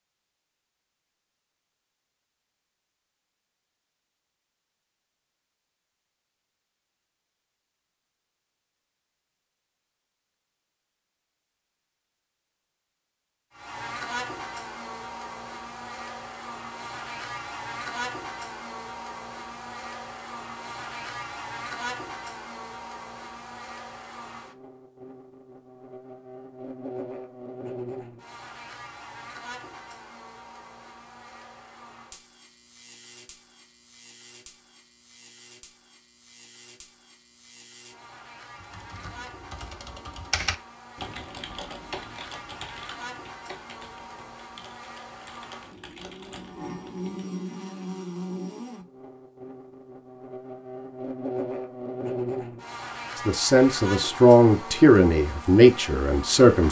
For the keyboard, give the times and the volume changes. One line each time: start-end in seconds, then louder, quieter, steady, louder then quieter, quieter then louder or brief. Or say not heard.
38.6-47.2 quieter.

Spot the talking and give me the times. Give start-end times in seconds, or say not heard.
53.1-56.6.